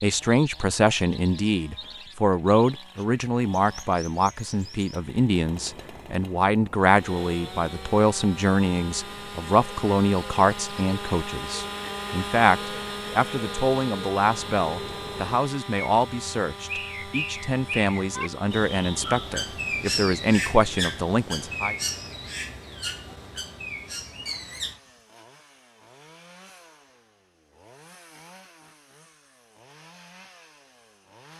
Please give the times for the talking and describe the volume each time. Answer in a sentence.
You can hear the talking from 0.0 to 21.8 s, at a steady volume.